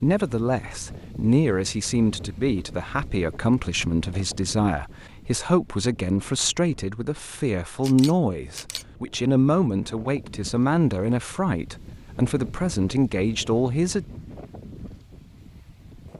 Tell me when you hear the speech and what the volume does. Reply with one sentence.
The speech can be heard from 0.0 to 14.1 s, at a steady volume.